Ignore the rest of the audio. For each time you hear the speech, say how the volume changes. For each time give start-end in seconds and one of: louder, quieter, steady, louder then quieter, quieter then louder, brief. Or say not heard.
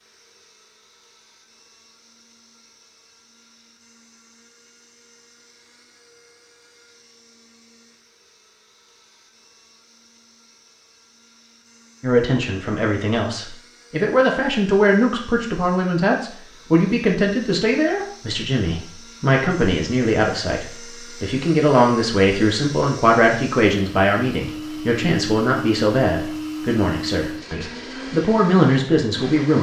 12.0-29.5 steady.